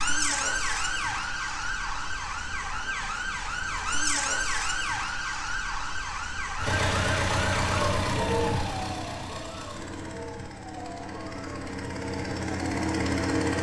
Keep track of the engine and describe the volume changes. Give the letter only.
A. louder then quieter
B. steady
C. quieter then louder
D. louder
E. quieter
C.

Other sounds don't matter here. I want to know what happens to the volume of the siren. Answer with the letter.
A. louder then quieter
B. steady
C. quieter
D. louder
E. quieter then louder
C.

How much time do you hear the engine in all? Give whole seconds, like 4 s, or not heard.
7 s.